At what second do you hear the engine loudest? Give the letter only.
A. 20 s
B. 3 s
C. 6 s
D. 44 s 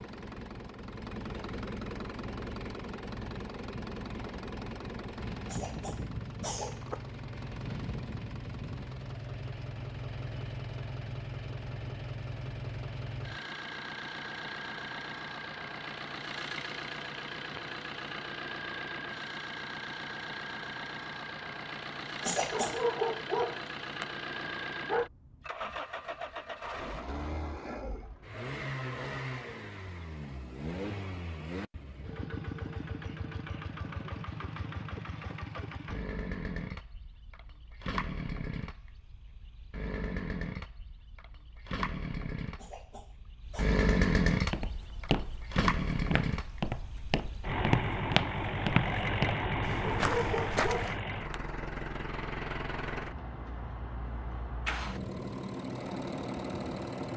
D.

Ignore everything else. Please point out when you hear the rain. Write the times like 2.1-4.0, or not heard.
not heard.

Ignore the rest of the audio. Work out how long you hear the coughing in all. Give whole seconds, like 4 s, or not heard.
3 s.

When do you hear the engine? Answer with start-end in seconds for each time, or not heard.
0.0-57.1.